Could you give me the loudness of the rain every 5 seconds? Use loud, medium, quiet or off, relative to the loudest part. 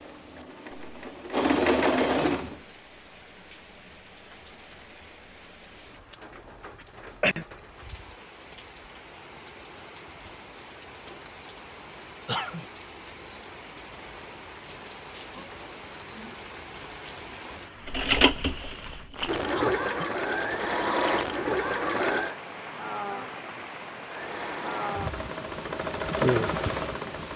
quiet, medium, medium, medium, loud, loud.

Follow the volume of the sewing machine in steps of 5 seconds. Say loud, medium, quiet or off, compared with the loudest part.
loud, off, off, loud, loud, loud.